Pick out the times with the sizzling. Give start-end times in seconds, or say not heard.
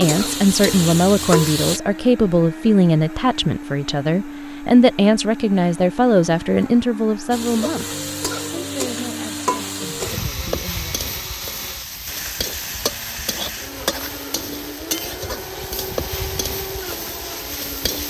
0.0-1.8, 7.3-18.0.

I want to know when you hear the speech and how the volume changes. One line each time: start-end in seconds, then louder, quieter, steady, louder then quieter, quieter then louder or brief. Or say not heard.
0.0-10.9 quieter.